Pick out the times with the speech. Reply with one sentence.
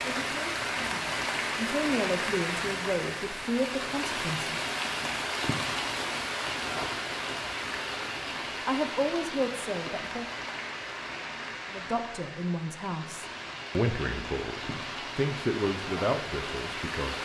You can hear the speech from 0.0 to 4.7 s, from 8.7 to 10.2 s and from 11.7 to 17.2 s.